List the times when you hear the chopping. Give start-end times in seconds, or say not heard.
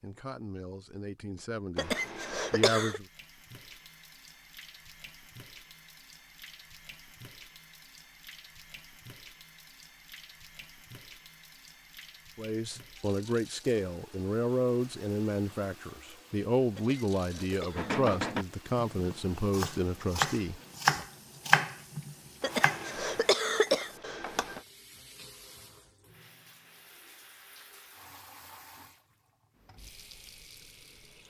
17.8-22.9.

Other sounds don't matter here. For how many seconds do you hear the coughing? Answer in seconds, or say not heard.
5 s.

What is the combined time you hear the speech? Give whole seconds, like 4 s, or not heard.
12 s.